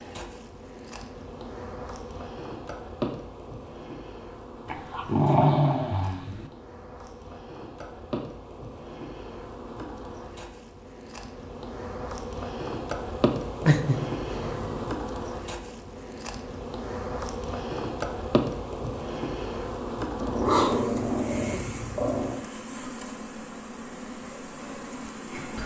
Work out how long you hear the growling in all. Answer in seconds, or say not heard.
5 s.